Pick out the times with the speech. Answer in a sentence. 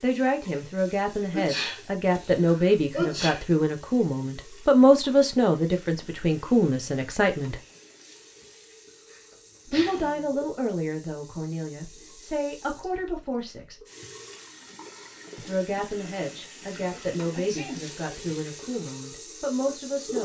The speech can be heard from 0.0 to 7.6 s, from 9.7 to 13.8 s and from 15.3 to 20.2 s.